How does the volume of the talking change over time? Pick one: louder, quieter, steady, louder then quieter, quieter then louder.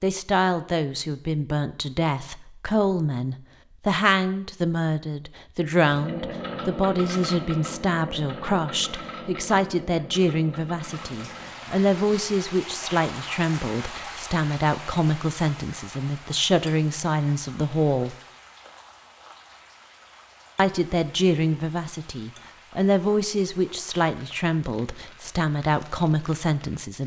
steady.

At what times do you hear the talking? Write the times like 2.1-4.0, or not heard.
0.0-18.1, 20.6-27.0.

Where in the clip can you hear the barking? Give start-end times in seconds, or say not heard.
not heard.